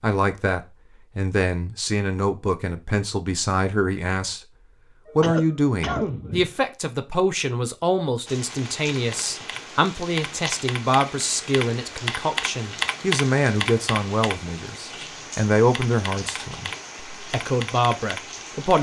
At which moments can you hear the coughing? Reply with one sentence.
The coughing can be heard from 5.0 to 6.5 s.